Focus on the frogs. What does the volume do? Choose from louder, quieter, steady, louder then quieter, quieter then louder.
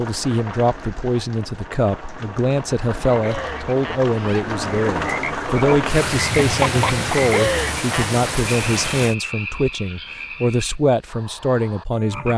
louder then quieter.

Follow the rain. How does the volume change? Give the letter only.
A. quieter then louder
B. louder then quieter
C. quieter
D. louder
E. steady
D.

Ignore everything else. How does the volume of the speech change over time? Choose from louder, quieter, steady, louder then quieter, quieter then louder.
steady.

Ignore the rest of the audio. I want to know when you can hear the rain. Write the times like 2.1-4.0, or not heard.
0.0-9.2.